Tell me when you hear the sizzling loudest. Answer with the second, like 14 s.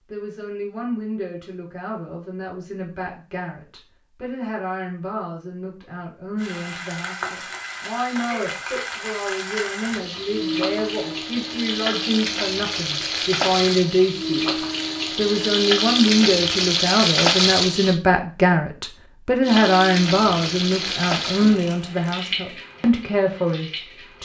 17 s.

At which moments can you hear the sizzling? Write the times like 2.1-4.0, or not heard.
6.3-18.0, 19.4-24.1.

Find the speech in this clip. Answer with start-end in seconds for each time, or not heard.
0.1-14.5, 15.2-24.1.